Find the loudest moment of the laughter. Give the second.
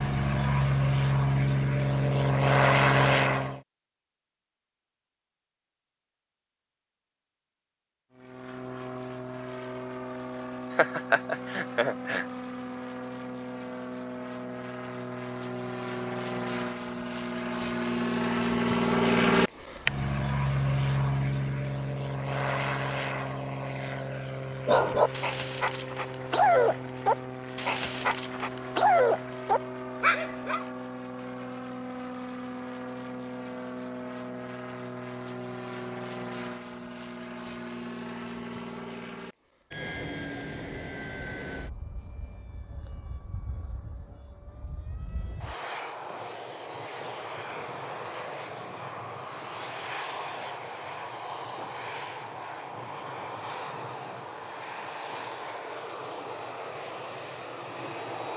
11 s.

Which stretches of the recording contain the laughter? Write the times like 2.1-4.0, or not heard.
10.7-12.2.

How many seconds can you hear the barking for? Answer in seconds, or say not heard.
6 s.